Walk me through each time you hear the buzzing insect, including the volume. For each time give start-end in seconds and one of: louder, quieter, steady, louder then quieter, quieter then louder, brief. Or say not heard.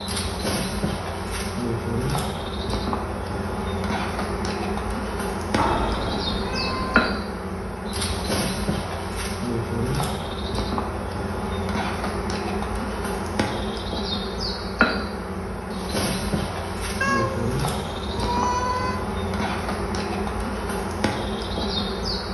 0.0-22.2 steady.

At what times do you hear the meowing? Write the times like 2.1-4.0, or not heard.
5.5-7.2, 17.0-19.0.